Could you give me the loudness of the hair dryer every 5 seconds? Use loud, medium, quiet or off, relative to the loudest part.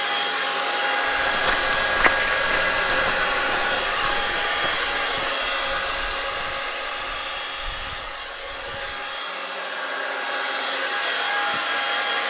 loud, medium, loud.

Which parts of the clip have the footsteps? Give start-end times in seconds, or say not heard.
1.1-9.2.